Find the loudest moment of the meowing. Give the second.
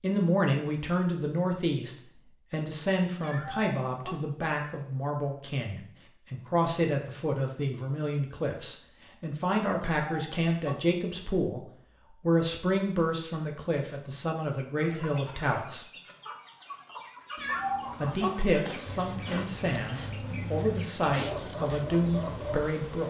18 s.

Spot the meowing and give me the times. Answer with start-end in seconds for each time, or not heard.
3.2-4.2, 9.8-10.8, 17.4-18.3.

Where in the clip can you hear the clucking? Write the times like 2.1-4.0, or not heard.
14.6-22.7.